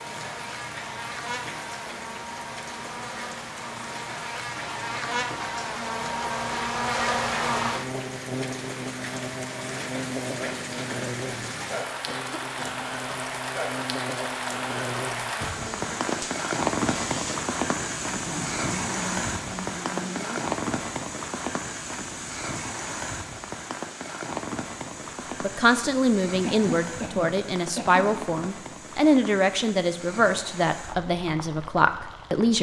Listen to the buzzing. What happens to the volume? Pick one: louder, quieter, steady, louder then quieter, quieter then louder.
louder then quieter.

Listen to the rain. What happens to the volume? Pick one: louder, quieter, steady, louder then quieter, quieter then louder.
louder then quieter.